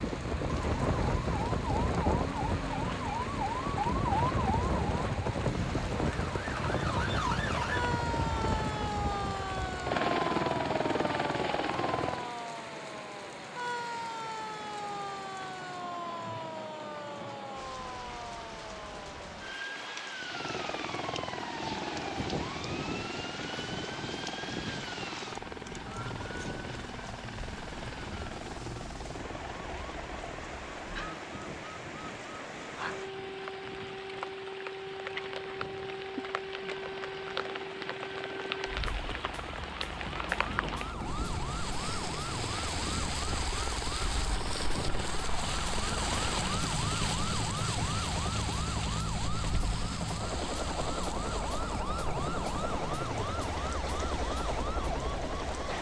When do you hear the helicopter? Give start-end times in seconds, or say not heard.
0.0-12.3, 20.2-55.7.